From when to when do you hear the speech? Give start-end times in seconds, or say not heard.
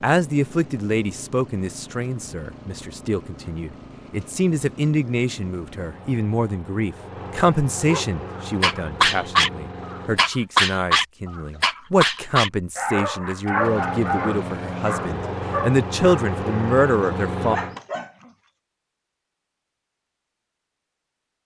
0.0-17.6.